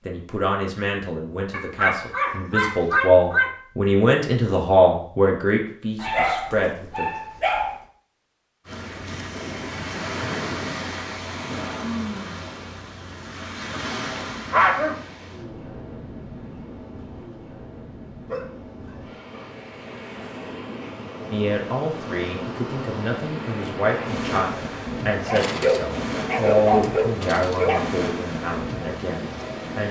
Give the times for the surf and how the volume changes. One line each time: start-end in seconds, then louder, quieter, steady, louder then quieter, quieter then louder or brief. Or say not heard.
8.7-29.8 quieter then louder.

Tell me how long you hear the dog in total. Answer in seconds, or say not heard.
10 s.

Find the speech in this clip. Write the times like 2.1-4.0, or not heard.
0.0-7.0, 21.3-29.8.